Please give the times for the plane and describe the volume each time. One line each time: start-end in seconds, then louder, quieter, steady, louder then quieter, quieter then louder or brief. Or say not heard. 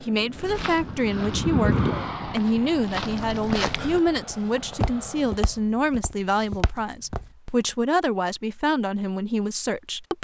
0.0-5.7 louder then quieter.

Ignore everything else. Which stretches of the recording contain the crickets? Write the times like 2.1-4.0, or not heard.
not heard.